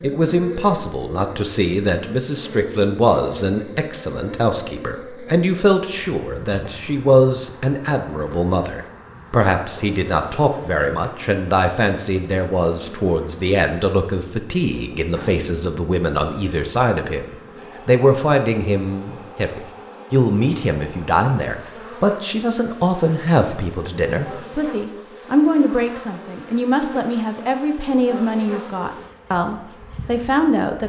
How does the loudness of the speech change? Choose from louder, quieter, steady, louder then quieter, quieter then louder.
steady.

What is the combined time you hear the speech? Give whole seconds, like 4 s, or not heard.
31 s.